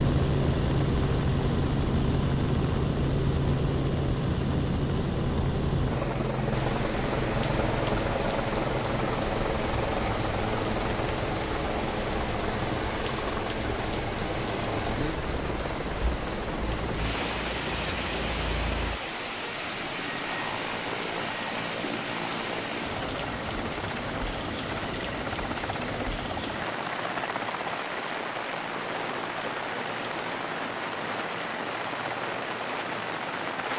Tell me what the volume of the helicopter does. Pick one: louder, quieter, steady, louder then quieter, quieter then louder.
quieter.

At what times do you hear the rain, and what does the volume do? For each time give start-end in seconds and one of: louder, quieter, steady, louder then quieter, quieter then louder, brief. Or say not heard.
6.5-33.7 steady.